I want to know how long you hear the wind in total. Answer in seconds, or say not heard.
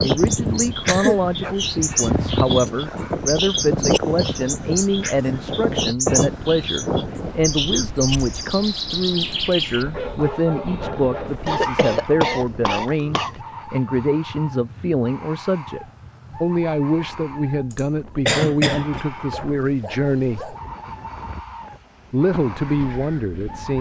24 s.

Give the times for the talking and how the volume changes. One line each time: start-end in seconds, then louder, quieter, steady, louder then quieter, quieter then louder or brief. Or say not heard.
0.0-20.6 steady
22.1-23.7 brief.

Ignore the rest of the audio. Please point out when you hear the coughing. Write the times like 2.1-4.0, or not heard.
0.2-1.2, 11.4-13.3, 17.7-19.0.